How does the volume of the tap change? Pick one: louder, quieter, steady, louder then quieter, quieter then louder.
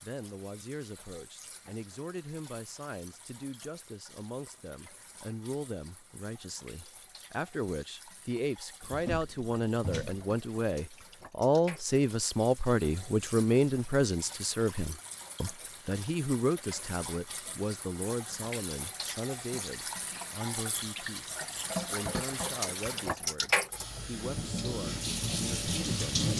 louder.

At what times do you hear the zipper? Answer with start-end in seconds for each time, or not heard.
not heard.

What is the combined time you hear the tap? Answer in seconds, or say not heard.
26 s.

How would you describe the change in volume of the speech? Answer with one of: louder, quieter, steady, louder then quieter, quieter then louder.
louder then quieter.